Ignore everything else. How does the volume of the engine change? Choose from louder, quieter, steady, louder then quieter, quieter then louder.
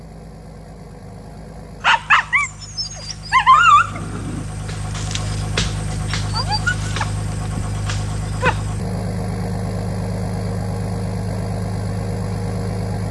louder.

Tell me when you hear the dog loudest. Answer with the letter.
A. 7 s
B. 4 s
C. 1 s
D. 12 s
B.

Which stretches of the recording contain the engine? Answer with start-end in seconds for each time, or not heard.
0.0-13.0.